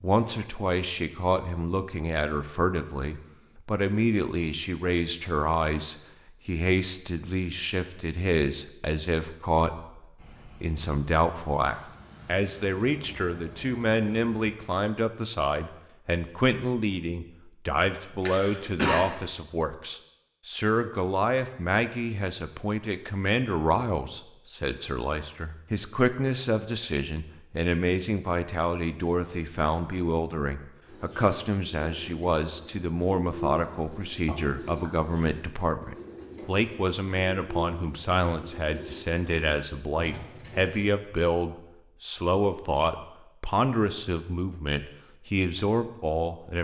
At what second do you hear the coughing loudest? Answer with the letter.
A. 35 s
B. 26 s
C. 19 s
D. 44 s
C.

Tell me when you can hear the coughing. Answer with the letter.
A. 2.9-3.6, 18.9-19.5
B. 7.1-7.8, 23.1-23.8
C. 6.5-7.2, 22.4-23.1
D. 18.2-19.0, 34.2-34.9
D.